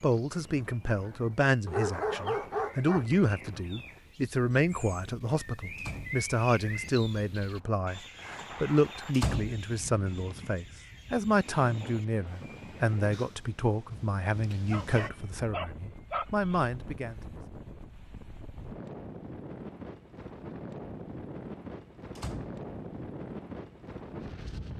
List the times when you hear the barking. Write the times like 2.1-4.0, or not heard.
1.6-3.3, 14.7-16.6.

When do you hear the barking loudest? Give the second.
2 s.